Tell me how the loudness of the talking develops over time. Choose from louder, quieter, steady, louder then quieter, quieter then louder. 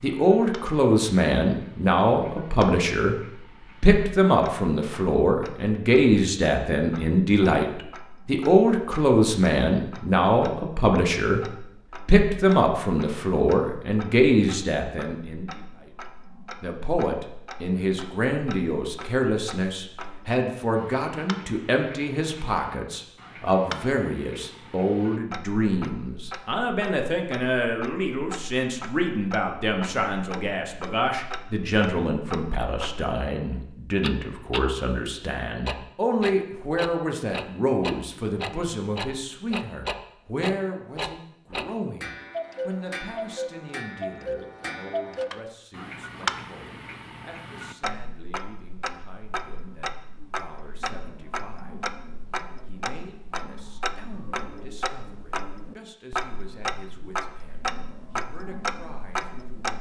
quieter.